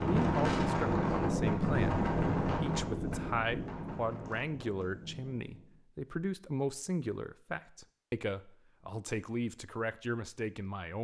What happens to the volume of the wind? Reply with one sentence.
The loudness of the wind goes down.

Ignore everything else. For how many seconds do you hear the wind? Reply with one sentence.
You can hear the wind for 6 seconds altogether.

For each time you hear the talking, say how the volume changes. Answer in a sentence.
The talking can be heard from 0.0 to 10.9 s, at a steady volume.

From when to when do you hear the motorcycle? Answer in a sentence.
You can't hear the motorcycle here.